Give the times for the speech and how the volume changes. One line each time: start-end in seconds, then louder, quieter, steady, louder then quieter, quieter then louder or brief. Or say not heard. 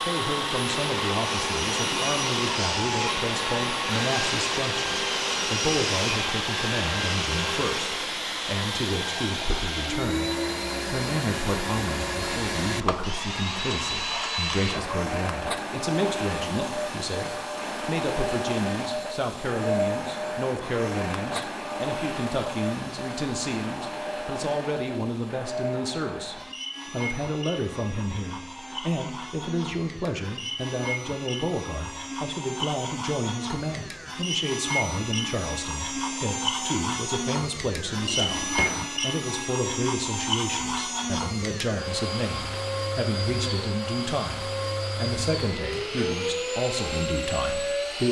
0.0-48.0 steady.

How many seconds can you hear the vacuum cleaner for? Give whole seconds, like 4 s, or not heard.
48 s.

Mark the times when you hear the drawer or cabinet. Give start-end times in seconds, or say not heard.
37.9-38.9.